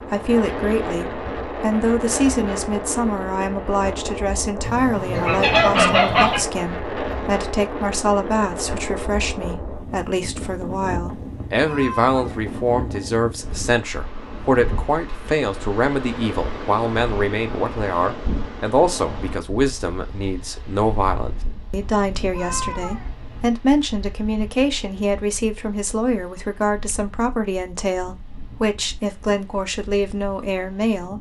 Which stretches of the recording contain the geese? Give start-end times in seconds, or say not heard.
4.6-6.5.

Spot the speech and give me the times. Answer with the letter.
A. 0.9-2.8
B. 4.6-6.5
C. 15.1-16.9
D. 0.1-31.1
D.